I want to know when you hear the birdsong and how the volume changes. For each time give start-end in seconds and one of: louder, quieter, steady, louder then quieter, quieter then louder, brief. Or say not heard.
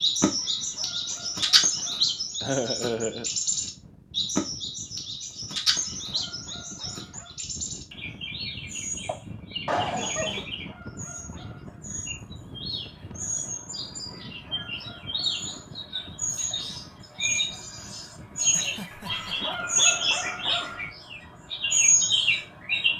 0.0-22.9 quieter then louder.